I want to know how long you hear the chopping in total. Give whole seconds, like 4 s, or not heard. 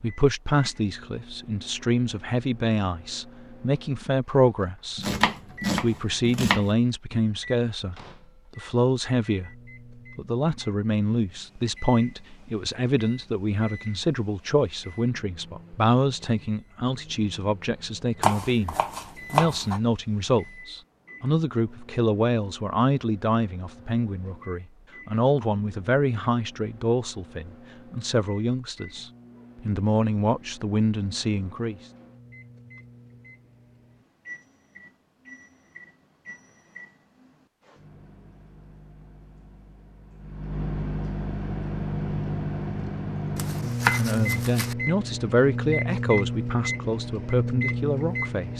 5 s.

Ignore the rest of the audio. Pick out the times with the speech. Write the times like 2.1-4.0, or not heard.
0.0-5.0, 5.7-8.0, 8.6-9.5, 10.2-31.8, 43.9-48.5.